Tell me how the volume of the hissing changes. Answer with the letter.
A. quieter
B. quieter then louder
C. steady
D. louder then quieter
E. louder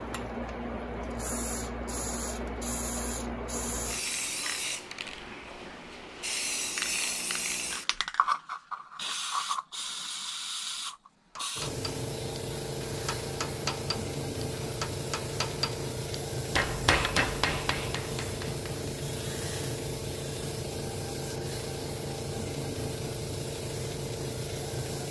C.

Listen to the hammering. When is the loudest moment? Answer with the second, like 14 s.
17 s.